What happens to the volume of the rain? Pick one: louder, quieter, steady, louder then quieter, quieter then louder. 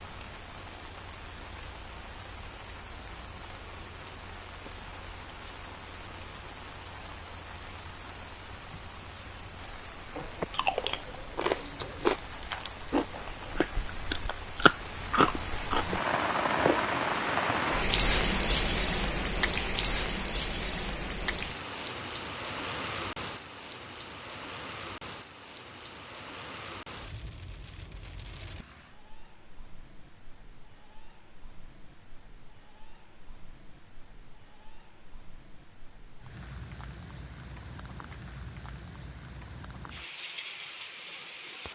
louder then quieter.